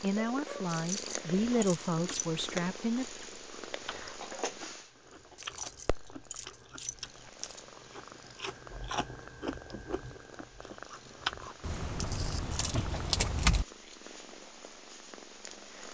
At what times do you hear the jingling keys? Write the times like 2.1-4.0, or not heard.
0.7-2.2, 5.3-7.8, 11.6-13.7.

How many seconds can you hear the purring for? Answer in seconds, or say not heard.
16 s.